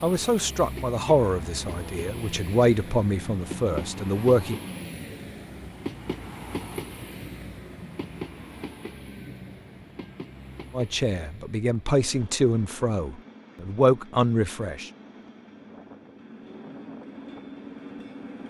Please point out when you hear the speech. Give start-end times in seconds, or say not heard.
0.0-4.6, 10.7-14.9.